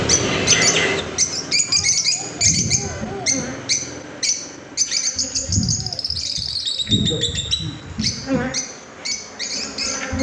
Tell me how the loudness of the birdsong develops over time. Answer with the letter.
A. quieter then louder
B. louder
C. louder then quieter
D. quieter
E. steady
D.